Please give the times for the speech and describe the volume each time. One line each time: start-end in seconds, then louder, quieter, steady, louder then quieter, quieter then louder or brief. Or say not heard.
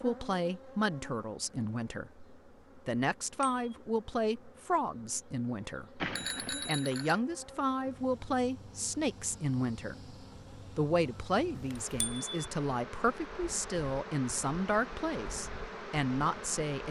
0.0-10.2 steady
10.8-16.8 steady.